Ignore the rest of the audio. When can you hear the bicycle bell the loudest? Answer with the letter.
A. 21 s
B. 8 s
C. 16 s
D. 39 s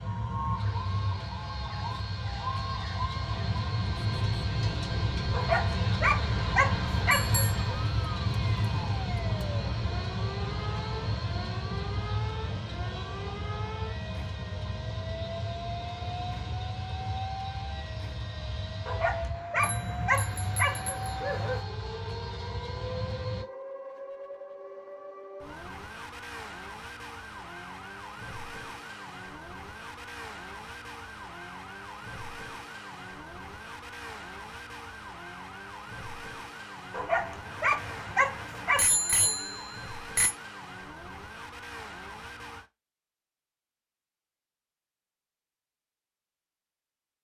D.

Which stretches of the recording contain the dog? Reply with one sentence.
You can hear the dog from 5.3 to 7.7 s, from 18.9 to 21.6 s and from 36.9 to 38.9 s.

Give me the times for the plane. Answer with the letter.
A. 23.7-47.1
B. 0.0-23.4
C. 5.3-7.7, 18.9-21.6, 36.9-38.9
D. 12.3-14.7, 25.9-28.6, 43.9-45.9
B.